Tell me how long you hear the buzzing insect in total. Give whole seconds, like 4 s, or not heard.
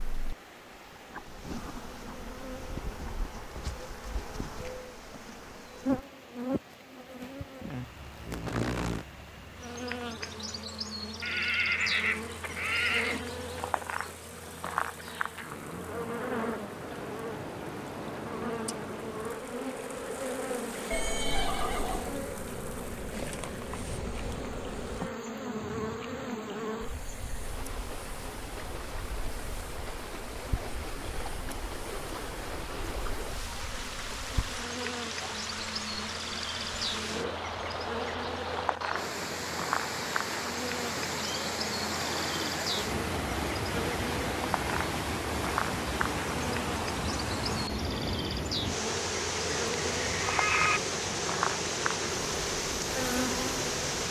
54 s.